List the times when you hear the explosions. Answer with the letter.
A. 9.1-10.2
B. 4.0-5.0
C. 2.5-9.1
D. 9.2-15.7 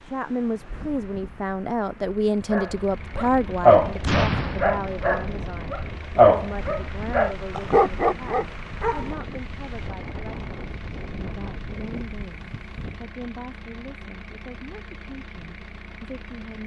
B.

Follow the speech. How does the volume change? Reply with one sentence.
The volume of the speech goes down.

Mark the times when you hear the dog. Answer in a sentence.
The dog can be heard from 2.5 to 9.1 s.